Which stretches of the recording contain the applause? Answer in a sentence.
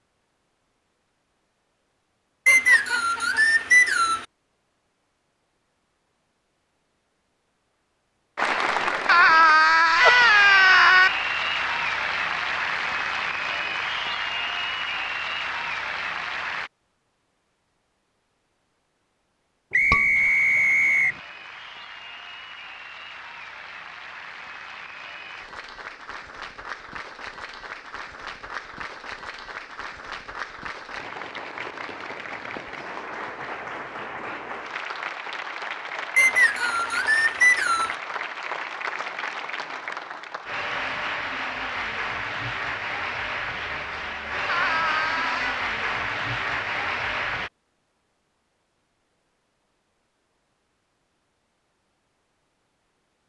You can hear the applause from 8.3 to 16.7 s and from 20.1 to 47.5 s.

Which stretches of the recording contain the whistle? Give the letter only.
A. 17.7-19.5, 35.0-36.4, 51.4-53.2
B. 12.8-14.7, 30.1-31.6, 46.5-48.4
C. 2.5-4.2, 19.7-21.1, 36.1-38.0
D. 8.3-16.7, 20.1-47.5
C.